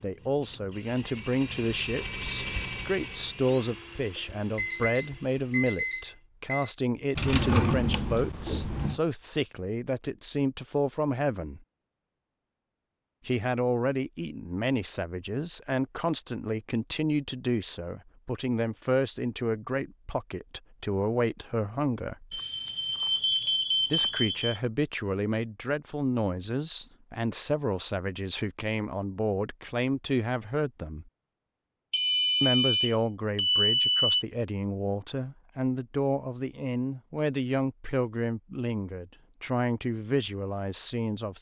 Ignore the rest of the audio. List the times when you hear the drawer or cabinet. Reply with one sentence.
The drawer or cabinet can be heard from 7.2 to 9.0 s.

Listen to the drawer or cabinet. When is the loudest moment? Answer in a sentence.
The volume of the drawer or cabinet peaks at 8 seconds.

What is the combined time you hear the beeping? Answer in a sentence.
The beeping can be heard for 7 seconds in total.